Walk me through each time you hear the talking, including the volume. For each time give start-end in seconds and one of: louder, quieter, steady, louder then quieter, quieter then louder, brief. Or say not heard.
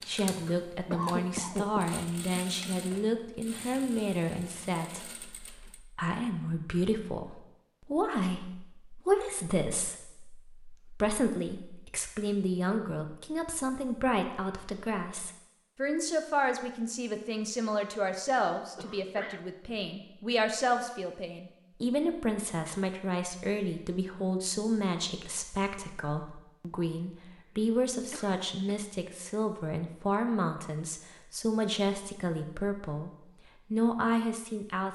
0.1-34.8 steady.